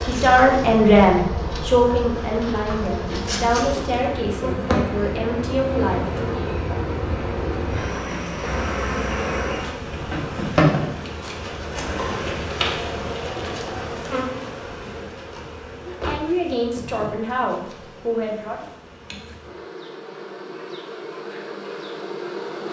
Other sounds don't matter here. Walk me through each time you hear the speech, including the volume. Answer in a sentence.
You can hear the speech from 0.0 to 6.4 s, getting quieter; and briefly from 15.8 to 18.6 s.